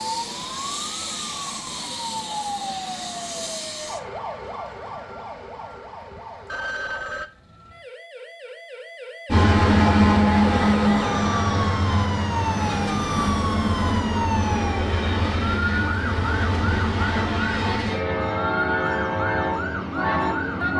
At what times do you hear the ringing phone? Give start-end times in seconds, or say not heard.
6.5-7.3.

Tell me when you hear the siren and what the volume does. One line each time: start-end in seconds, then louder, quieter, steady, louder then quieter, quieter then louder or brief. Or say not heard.
0.0-20.7 quieter then louder.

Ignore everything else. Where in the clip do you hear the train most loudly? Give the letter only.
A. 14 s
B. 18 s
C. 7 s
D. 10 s
D.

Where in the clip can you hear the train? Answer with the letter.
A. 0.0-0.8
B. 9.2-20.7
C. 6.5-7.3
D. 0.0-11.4
B.